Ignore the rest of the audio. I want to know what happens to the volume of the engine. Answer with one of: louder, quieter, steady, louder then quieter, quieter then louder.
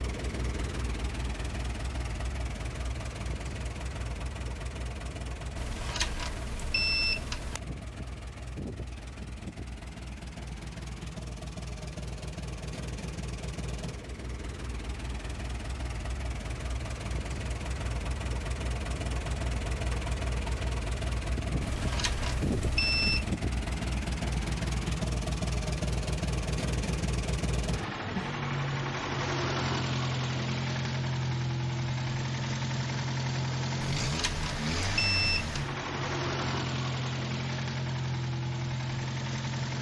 louder.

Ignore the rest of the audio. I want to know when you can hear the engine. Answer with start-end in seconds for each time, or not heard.
0.0-39.7.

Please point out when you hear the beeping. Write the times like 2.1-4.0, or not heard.
5.5-7.6, 21.6-23.3, 33.9-35.8.